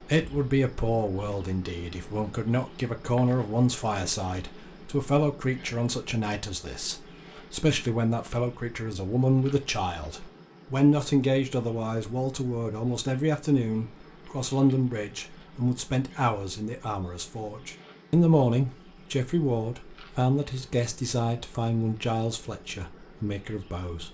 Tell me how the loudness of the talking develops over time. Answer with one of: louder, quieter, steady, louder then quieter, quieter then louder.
steady.